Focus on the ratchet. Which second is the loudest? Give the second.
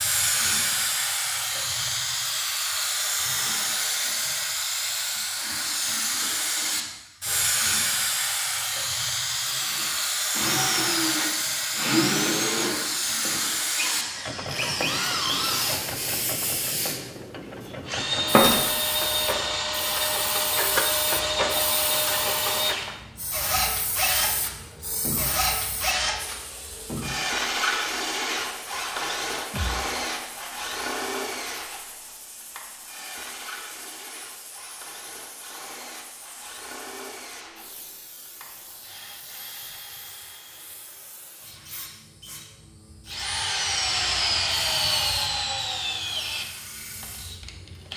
21 s.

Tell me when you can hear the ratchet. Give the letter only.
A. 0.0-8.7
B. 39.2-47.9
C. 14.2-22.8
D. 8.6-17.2
C.